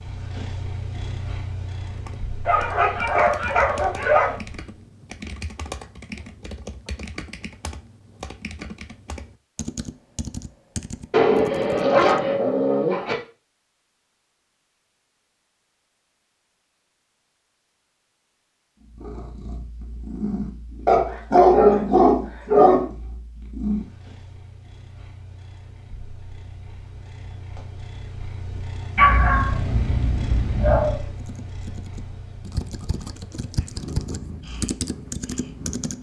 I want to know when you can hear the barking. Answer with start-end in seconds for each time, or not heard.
2.5-4.3, 11.1-13.2, 20.9-22.9, 28.9-31.0.